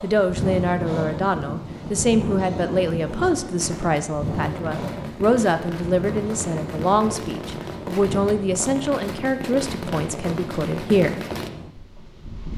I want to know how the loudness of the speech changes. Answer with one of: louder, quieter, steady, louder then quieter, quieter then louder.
steady.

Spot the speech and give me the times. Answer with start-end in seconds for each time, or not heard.
0.0-11.2.